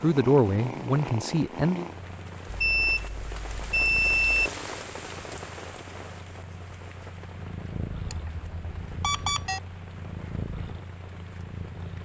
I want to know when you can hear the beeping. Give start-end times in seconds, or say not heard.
2.6-4.5, 8.1-9.6.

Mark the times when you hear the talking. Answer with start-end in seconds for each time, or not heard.
0.0-1.9.